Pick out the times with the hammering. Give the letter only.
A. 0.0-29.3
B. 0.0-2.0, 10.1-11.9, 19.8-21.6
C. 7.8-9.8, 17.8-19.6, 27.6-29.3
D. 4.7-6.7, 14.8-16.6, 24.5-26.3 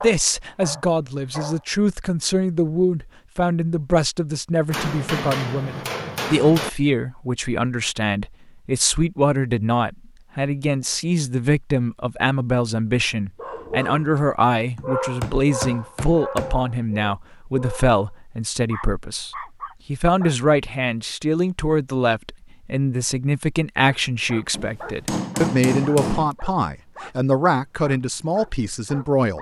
D.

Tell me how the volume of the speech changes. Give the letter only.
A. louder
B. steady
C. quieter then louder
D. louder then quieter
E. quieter
B.